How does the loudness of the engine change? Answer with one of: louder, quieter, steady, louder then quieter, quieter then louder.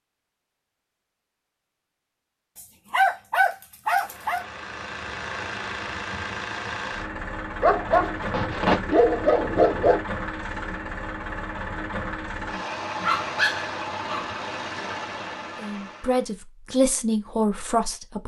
steady.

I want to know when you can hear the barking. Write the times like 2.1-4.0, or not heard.
2.9-4.5, 7.6-10.0, 13.0-14.3.